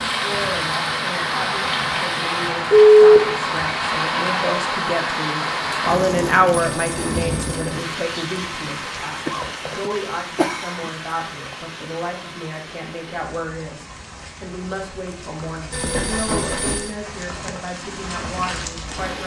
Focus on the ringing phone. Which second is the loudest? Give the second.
3 s.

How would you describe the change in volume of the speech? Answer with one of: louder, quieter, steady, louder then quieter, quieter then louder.
louder then quieter.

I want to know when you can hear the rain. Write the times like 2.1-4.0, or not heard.
0.0-19.2.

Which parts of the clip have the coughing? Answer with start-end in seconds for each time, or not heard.
9.2-10.9.